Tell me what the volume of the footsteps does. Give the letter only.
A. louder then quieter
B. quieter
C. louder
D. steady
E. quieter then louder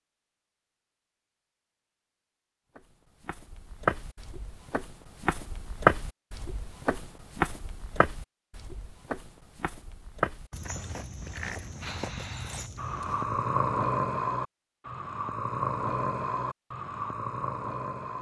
A.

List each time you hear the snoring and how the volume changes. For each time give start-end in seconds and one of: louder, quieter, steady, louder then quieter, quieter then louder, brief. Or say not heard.
11.3-18.1 louder then quieter.